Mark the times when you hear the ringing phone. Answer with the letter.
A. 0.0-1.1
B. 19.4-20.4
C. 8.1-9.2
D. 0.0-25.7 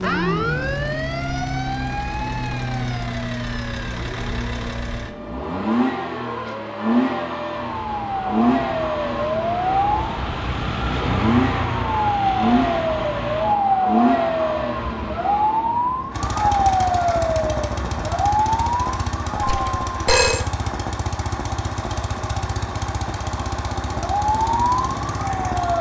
B.